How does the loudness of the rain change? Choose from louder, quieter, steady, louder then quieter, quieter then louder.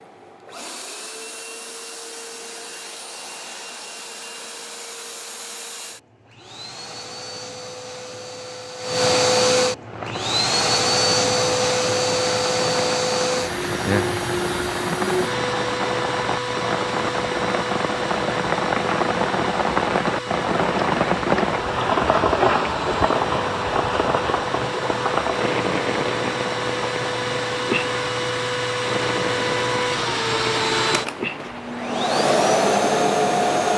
louder then quieter.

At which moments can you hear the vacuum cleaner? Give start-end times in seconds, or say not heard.
0.0-33.7.